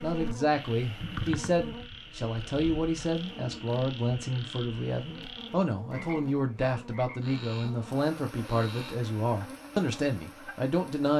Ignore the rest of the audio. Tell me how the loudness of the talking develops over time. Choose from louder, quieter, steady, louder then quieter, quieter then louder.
steady.